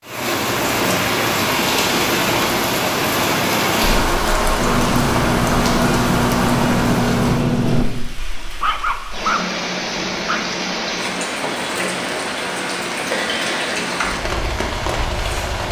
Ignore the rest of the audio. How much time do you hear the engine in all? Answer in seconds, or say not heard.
3 s.